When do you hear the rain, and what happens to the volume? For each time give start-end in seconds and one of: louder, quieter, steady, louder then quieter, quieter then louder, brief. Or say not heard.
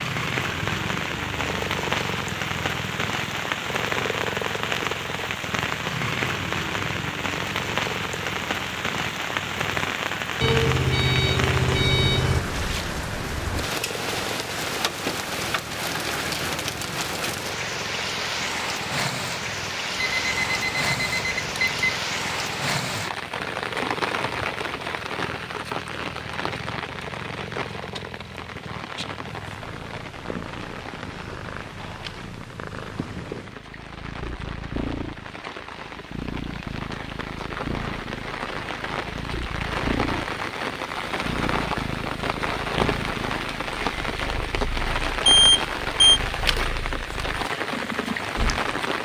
0.0-49.0 quieter then louder.